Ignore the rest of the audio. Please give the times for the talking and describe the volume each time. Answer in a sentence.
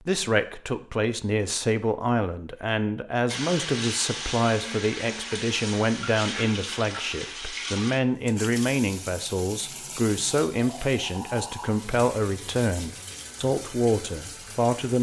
You can hear the talking from 0.0 to 14.9 s, at a steady volume.